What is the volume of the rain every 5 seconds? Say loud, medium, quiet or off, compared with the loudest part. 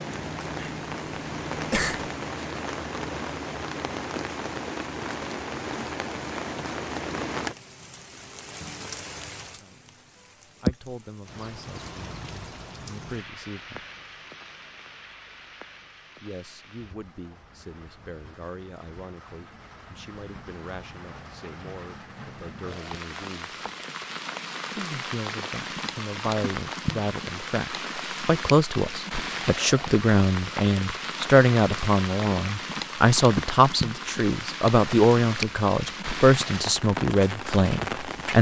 loud, loud, loud, quiet, medium, loud, loud, loud.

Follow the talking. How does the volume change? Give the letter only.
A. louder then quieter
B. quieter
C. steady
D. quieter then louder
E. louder
E.